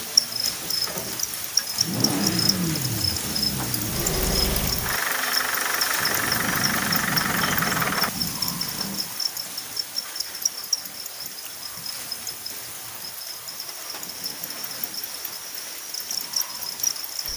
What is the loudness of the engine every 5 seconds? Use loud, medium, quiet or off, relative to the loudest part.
loud, loud, off, off.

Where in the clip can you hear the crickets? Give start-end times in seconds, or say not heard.
0.0-17.3.